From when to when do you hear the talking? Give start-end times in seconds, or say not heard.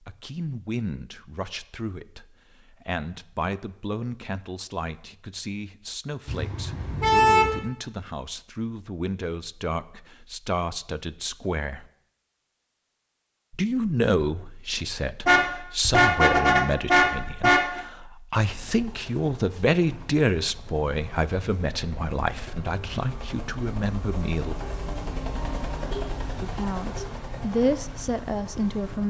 0.0-11.8, 13.5-24.6, 26.4-29.0.